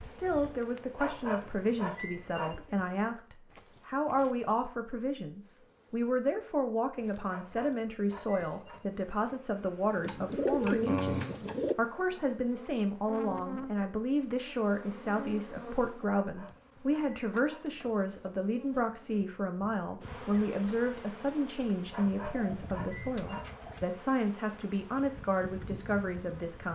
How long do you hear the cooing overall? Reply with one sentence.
You can hear the cooing for 3 seconds altogether.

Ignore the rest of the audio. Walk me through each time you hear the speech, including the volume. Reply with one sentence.
The speech can be heard from 0.0 to 26.6 s, at a steady volume.